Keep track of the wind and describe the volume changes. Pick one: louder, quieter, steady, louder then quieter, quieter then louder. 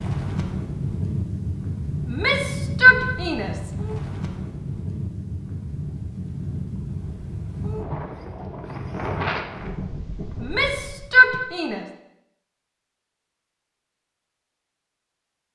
steady.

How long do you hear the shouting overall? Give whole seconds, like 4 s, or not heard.
3 s.